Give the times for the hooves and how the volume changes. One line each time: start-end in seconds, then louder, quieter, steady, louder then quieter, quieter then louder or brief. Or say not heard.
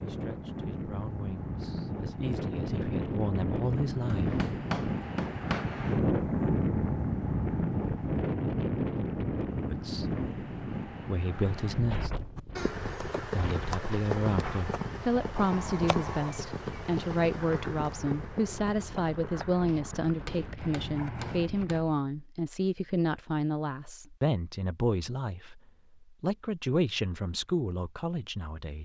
12.3-21.5 quieter.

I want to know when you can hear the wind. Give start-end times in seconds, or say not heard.
0.0-22.0.